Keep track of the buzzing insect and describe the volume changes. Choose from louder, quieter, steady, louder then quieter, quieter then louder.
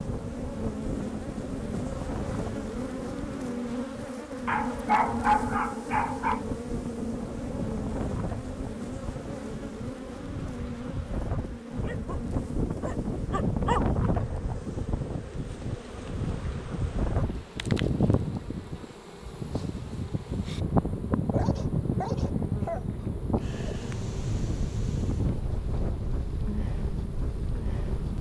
quieter.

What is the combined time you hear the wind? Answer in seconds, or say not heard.
28 s.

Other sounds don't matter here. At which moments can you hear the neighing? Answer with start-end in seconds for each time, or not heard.
not heard.